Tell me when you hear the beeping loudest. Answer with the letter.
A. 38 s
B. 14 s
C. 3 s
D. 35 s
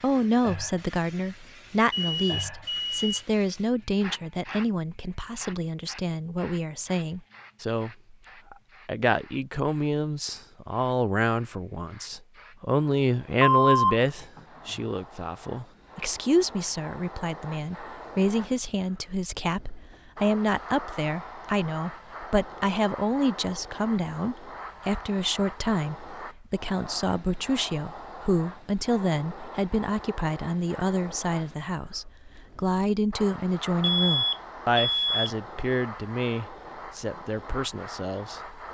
B.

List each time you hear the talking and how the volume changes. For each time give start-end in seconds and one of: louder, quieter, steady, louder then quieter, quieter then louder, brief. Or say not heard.
0.0-38.4 steady.